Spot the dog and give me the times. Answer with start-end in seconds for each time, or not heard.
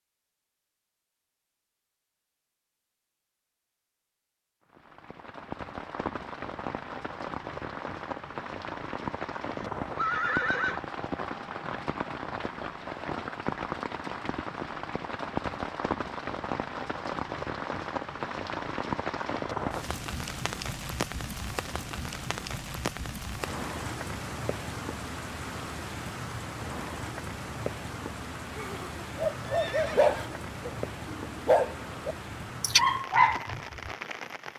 29.1-33.9.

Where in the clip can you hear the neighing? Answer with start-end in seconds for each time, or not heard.
9.6-10.8, 28.5-30.3.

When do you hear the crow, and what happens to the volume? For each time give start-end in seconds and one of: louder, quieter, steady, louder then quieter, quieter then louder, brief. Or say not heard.
not heard.